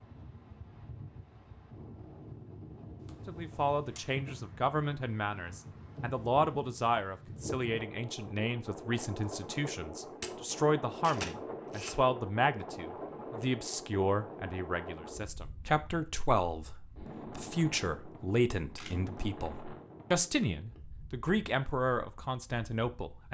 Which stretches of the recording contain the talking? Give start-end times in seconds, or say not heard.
3.2-23.3.